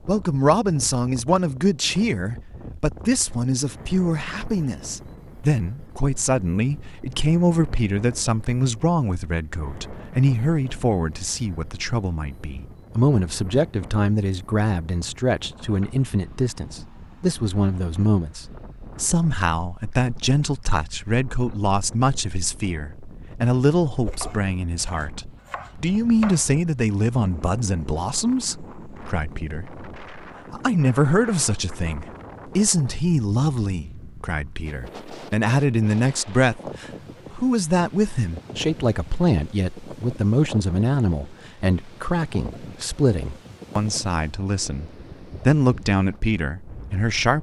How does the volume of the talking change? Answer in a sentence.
The loudness of the talking stays about the same.